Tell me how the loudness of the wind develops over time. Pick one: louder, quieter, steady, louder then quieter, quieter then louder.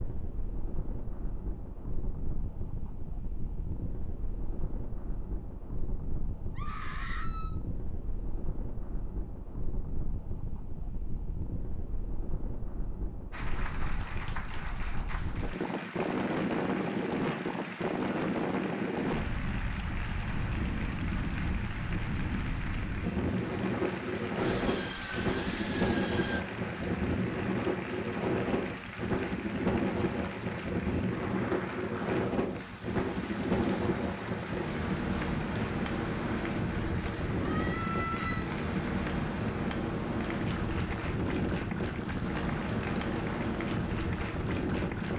louder.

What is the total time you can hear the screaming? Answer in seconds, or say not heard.
4 s.